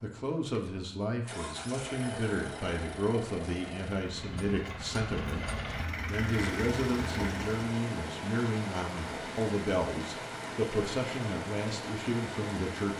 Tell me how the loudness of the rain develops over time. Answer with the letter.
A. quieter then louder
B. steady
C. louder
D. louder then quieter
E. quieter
B.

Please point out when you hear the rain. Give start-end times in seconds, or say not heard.
6.2-12.9.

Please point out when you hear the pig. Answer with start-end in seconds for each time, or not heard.
not heard.